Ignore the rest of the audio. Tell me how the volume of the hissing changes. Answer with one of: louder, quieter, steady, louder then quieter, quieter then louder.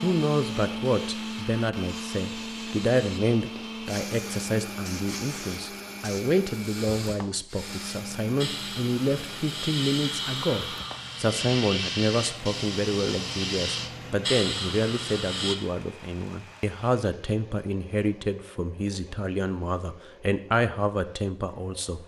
louder.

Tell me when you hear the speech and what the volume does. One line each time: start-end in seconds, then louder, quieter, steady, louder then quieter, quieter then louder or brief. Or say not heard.
0.0-22.0 steady.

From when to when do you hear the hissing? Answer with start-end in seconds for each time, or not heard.
0.0-15.6.